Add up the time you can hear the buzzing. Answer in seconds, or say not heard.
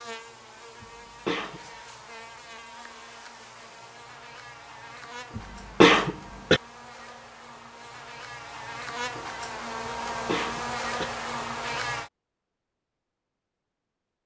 12 s.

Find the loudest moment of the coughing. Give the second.
6 s.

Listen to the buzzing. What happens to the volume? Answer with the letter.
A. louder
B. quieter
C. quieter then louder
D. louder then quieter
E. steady
A.